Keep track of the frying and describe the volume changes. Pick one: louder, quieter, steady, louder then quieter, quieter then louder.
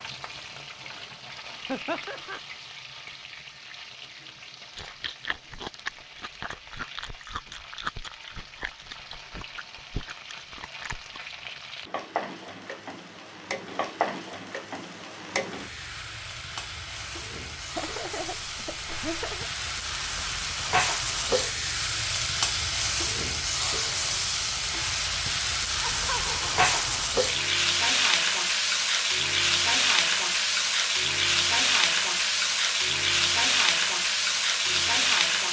louder.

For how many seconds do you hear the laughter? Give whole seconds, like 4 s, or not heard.
4 s.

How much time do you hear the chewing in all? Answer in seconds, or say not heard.
7 s.